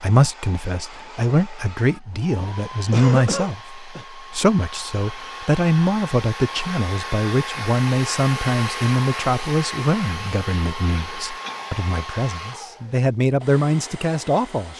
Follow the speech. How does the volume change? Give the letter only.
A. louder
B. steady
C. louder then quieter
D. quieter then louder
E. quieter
B.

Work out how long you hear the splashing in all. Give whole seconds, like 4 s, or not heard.
not heard.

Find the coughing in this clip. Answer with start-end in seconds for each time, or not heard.
2.9-4.0, 10.9-11.8.